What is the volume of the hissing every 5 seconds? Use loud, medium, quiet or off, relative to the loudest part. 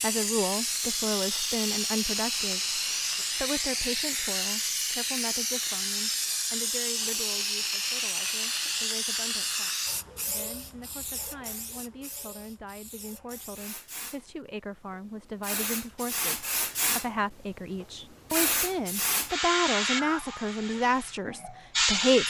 loud, loud, quiet, loud, loud.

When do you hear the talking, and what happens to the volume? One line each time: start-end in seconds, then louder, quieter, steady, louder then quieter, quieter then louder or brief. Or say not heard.
0.0-22.2 quieter then louder.